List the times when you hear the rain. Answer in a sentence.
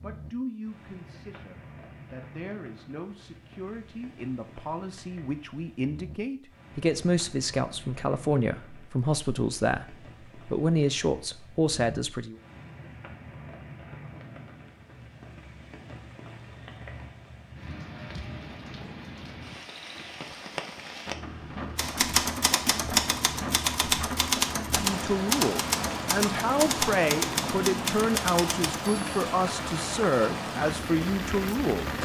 The rain can be heard from 0.0 to 32.0 s.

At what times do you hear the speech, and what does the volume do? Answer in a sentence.
You can hear the speech from 0.0 to 12.3 s, getting louder; and from 24.8 to 31.9 s, at a steady volume.